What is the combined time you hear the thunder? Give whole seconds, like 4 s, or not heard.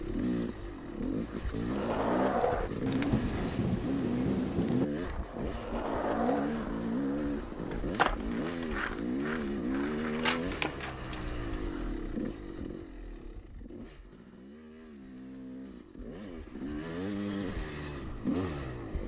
2 s.